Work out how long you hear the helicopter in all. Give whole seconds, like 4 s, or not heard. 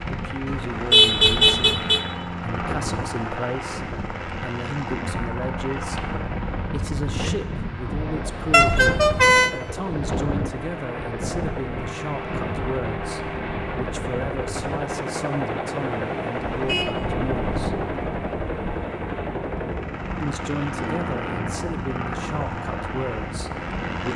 24 s.